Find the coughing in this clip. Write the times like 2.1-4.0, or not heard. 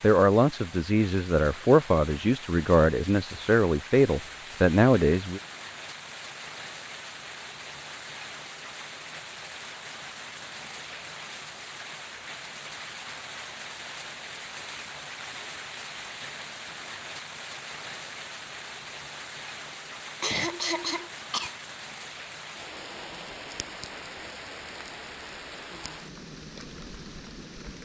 20.2-21.6.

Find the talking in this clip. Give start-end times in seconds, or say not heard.
0.0-5.4.